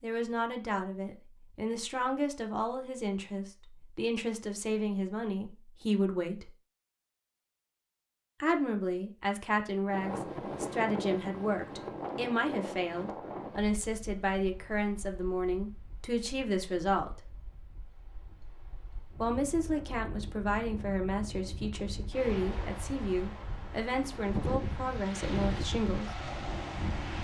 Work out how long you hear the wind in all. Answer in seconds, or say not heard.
17 s.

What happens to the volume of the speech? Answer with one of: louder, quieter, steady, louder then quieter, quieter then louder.
steady.